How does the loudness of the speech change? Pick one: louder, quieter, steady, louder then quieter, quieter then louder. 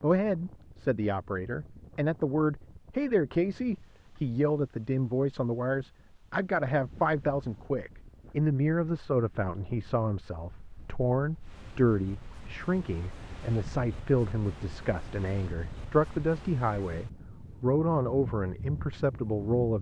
steady.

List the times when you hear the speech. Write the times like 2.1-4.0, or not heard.
0.0-19.7.